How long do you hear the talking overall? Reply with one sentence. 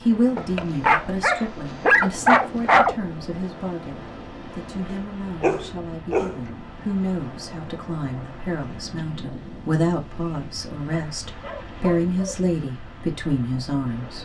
You can hear the talking for 14 seconds altogether.